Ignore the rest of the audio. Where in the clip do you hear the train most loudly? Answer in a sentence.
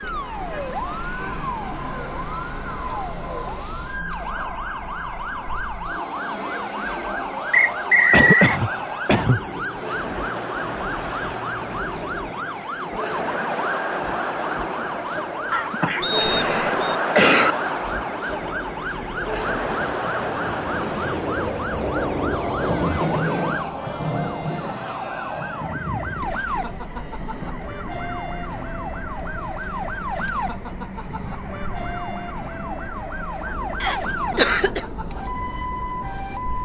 The loudest moment of the train is at 23 seconds.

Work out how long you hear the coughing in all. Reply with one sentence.
The coughing can be heard for 4 seconds in total.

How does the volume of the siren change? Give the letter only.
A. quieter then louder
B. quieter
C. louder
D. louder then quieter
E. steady
E.